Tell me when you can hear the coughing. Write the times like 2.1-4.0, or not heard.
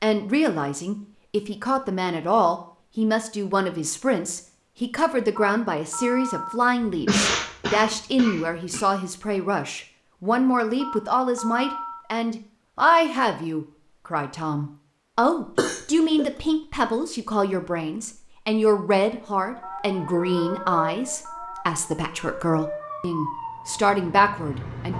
7.0-8.8, 15.6-16.2.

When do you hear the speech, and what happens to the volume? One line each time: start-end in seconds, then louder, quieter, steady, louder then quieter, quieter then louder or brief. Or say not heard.
0.0-24.9 steady.